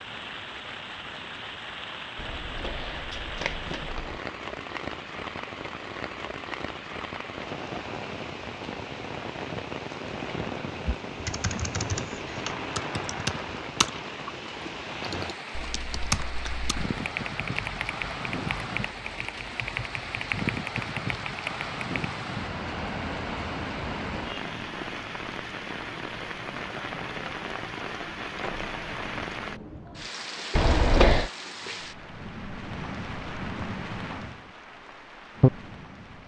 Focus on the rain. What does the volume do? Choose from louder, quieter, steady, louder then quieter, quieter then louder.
steady.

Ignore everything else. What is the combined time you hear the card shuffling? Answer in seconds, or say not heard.
4 s.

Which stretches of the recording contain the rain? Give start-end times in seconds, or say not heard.
0.0-36.2.